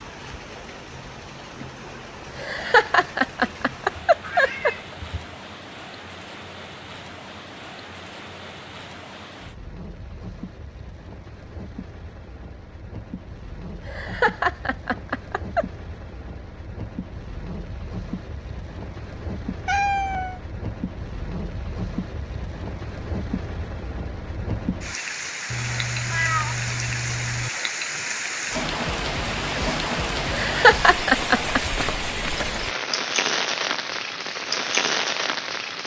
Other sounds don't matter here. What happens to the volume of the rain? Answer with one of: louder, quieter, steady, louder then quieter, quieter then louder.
louder.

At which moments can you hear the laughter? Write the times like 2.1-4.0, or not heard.
2.4-4.7, 13.8-15.7, 30.2-31.8.